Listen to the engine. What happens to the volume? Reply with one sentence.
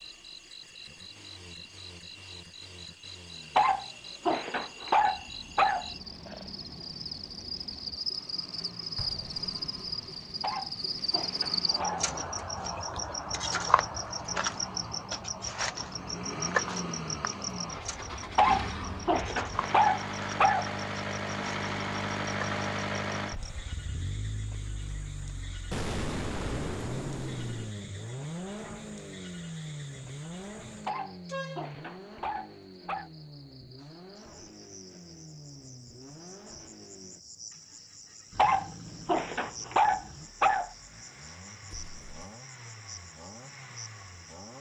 The loudness of the engine goes up, then down.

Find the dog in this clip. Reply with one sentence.
The dog can be heard from 3.5 to 6.5 s, from 10.4 to 12.1 s, from 18.4 to 20.7 s, from 30.9 to 33.1 s and from 38.4 to 40.7 s.